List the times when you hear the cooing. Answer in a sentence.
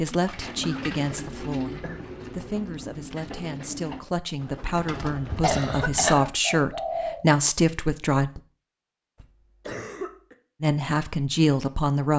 The cooing can be heard from 0.2 to 7.2 s.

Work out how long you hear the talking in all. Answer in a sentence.
The talking can be heard for 10 seconds in total.